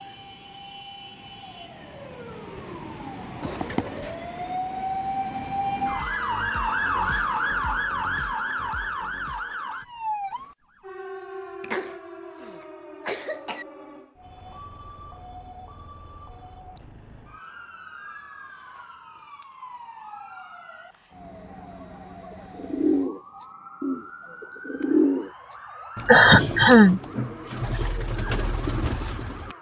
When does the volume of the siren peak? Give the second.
7 s.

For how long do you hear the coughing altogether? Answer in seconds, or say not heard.
4 s.